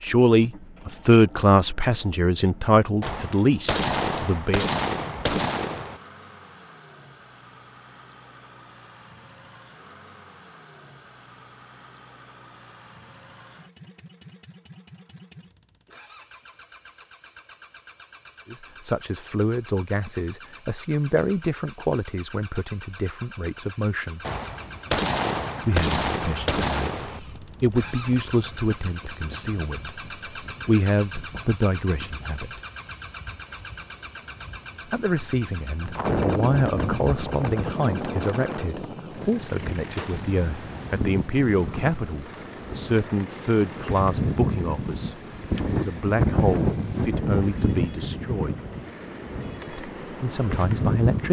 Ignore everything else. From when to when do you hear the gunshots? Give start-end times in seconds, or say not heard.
3.0-6.0, 24.2-27.2, 40.0-41.0.